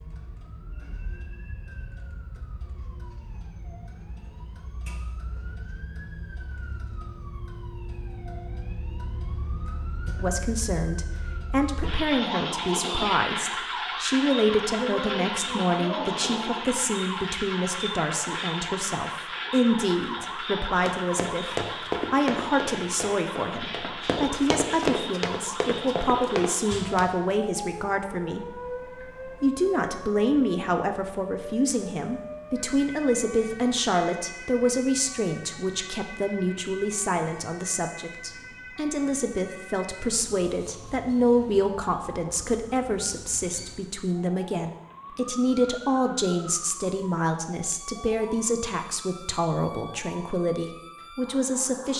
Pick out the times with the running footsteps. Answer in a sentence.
You can hear the running footsteps from 20.9 to 27.1 s.